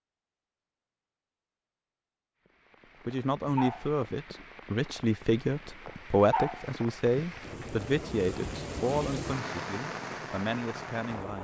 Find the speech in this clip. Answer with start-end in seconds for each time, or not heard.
3.0-11.3.